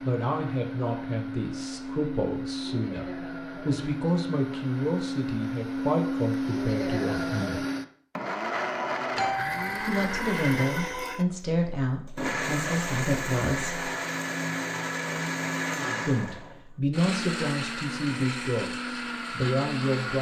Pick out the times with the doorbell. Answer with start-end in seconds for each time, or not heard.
9.2-10.0.